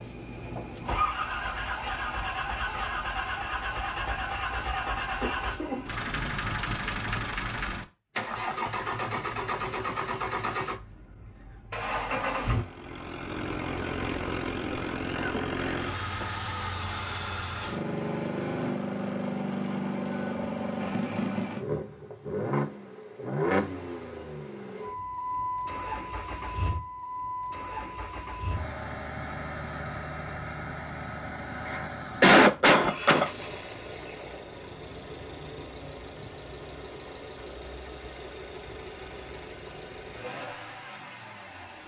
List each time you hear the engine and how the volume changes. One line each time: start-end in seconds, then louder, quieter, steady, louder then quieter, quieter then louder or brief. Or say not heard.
0.0-41.8 quieter.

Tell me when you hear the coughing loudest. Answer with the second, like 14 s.
32 s.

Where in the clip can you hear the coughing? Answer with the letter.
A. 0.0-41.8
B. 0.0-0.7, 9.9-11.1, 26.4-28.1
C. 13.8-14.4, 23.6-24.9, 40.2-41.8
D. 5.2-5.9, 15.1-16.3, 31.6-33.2
D.